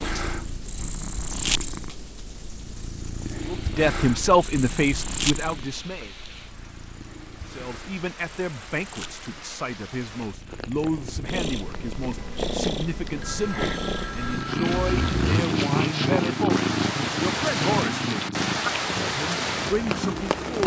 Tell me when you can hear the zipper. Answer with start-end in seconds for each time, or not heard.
14.7-15.5.